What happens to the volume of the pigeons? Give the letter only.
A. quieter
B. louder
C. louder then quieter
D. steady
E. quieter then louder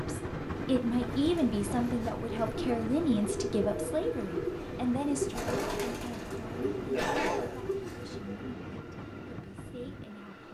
B.